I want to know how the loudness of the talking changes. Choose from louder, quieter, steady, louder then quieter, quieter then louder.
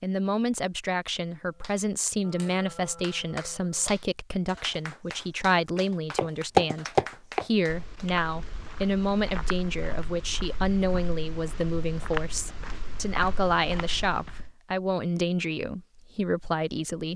steady.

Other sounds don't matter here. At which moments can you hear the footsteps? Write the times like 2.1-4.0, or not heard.
6.2-14.6.